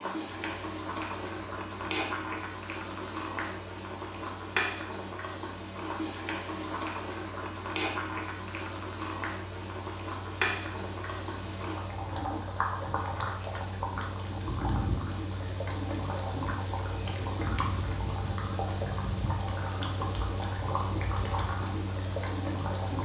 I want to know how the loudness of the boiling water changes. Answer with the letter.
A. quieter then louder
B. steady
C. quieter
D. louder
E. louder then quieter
B.